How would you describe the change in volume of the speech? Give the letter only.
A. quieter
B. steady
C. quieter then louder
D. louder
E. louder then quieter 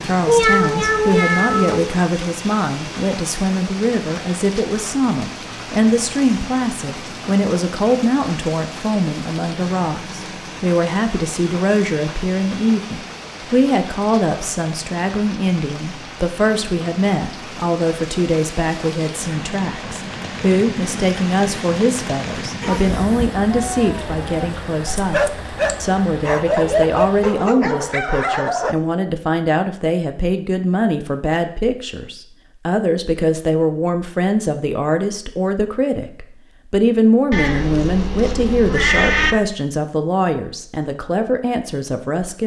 B.